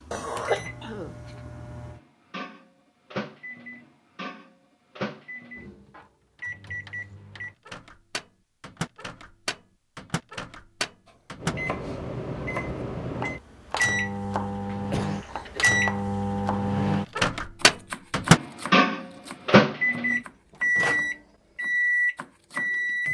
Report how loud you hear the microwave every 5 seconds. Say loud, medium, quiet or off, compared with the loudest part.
quiet, quiet, medium, loud, loud.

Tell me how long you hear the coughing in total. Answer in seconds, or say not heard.
2 s.